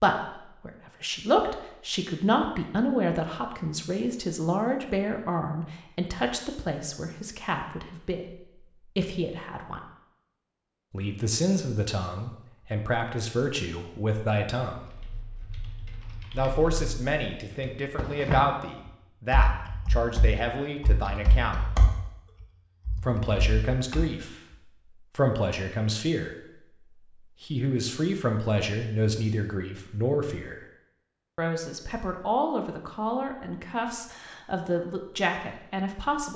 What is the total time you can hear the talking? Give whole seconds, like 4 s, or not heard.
32 s.